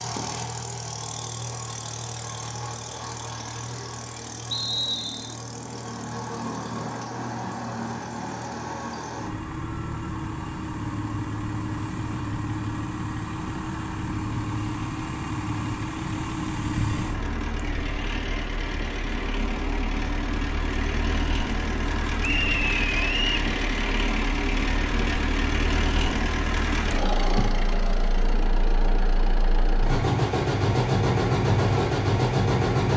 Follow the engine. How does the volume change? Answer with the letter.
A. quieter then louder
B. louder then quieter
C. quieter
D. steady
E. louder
E.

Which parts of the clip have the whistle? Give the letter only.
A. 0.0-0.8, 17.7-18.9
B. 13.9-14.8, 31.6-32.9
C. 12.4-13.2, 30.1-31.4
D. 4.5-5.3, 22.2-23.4
D.